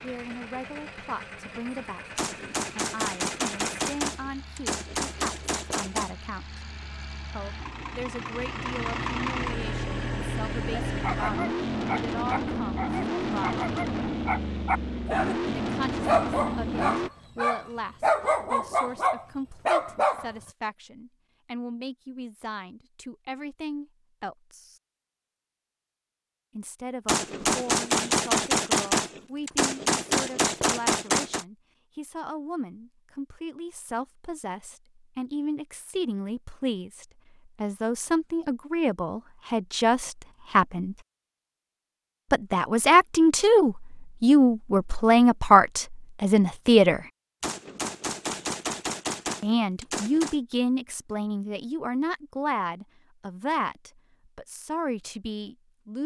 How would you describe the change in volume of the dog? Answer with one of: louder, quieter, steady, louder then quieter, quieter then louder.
louder.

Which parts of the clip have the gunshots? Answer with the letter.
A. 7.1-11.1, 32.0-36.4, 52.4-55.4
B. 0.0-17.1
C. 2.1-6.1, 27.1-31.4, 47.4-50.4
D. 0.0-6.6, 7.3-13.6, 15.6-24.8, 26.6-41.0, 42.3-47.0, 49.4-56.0
C.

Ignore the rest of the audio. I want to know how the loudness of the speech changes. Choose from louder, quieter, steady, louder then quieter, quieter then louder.
louder.